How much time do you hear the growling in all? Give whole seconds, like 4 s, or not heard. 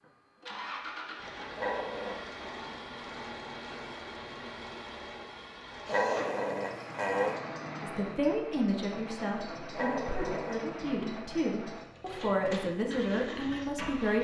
3 s.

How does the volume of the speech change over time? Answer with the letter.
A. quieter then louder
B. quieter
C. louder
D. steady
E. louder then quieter
A.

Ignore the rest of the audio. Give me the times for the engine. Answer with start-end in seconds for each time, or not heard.
0.0-14.1.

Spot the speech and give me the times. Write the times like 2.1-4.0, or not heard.
7.8-14.1.